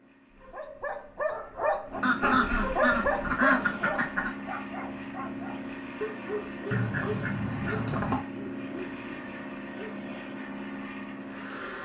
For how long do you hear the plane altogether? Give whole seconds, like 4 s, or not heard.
12 s.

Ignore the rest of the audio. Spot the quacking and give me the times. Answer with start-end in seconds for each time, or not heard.
2.0-4.3, 6.7-8.2.